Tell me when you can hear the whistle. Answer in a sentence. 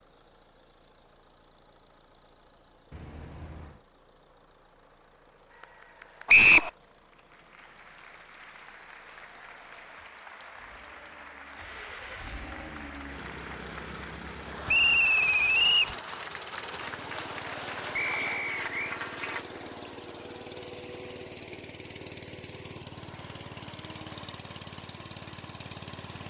The whistle can be heard from 6.2 to 6.7 s, from 14.7 to 15.9 s and from 17.9 to 18.9 s.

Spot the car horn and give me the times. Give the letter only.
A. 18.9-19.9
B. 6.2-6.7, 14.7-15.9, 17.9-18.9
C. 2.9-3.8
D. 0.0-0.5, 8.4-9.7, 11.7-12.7
C.